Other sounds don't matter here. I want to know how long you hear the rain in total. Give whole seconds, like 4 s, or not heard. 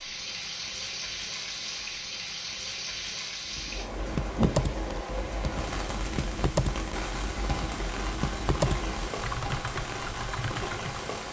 11 s.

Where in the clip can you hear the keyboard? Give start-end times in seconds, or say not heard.
3.5-11.1.